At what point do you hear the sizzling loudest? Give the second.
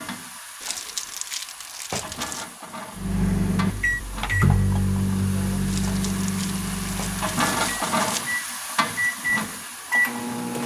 8 s.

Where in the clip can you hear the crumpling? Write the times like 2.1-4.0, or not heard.
0.6-2.5, 5.7-8.3.